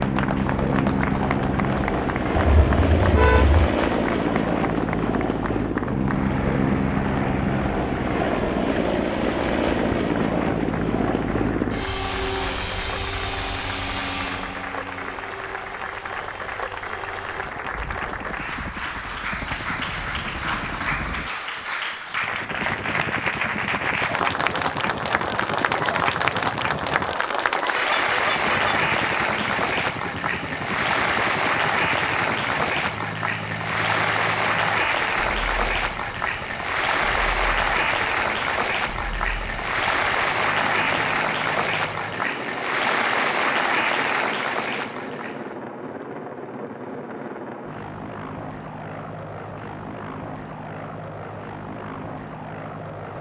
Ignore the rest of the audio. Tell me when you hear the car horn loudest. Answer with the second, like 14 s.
3 s.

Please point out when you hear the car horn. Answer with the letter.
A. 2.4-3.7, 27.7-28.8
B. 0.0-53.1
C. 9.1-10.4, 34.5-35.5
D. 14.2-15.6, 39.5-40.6
A.